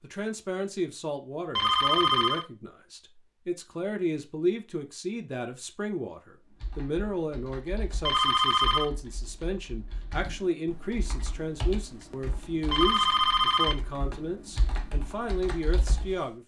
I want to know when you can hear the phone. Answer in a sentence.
The phone can be heard from 1.6 to 2.5 s, from 8.1 to 8.9 s and from 12.7 to 13.8 s.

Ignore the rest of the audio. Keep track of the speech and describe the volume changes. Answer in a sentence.
The volume of the speech stays about the same.